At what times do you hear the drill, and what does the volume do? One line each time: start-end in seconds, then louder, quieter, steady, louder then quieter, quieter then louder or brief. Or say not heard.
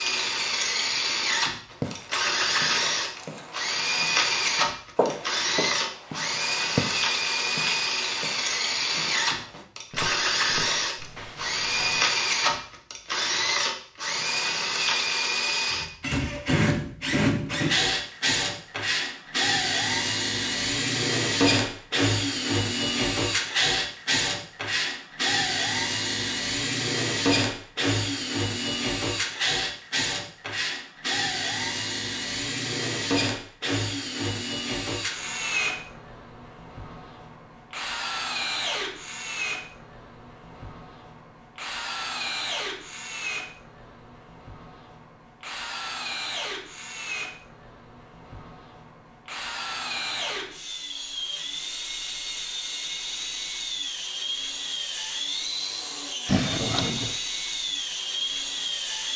0.0-59.1 quieter.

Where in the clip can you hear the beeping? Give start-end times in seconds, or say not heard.
56.2-57.1.